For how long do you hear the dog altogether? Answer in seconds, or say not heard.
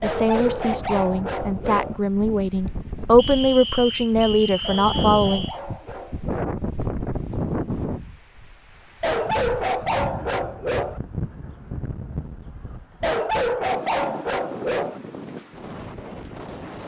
8 s.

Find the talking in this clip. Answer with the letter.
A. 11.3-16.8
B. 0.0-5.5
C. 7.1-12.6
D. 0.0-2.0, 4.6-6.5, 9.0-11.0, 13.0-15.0
B.